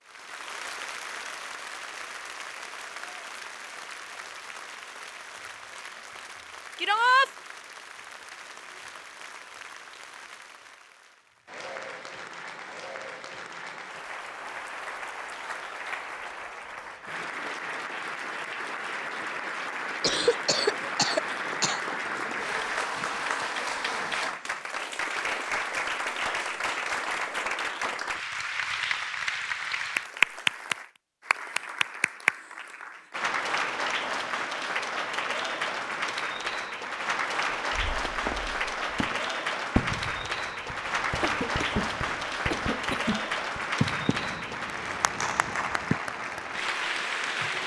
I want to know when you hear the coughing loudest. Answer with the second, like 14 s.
20 s.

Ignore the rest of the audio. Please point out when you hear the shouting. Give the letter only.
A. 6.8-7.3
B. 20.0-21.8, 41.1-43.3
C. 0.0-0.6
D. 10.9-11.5
A.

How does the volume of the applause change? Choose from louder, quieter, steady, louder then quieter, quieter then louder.
louder.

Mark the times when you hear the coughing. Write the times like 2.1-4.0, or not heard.
20.0-21.8, 41.1-43.3.